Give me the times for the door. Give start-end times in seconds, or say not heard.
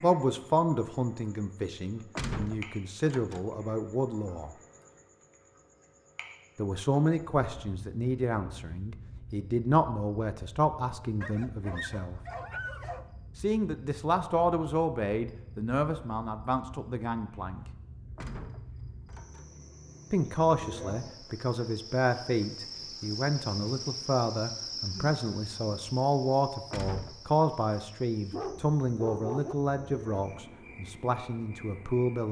2.1-3.5, 18.1-19.6, 26.7-27.3.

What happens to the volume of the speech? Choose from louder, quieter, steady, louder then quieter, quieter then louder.
steady.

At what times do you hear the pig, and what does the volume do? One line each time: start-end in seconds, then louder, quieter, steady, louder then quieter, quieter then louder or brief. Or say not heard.
not heard.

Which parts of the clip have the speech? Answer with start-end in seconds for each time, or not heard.
0.0-4.5, 6.5-12.2, 13.3-17.6, 20.1-32.2.